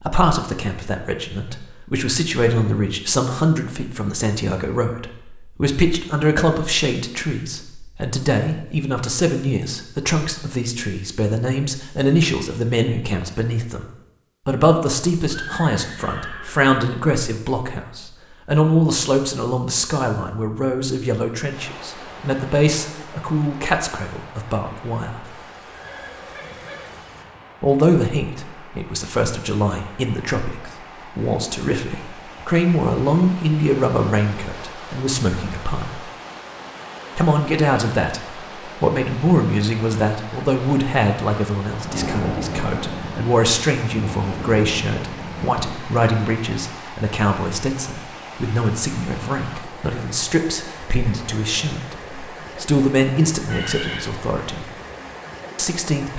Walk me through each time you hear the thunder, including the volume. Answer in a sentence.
The thunder can be heard from 41.8 to 45.8 s, getting quieter.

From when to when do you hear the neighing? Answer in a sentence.
You can hear the neighing from 15.2 to 16.7 s, from 25.2 to 27.2 s and from 53.4 to 54.1 s.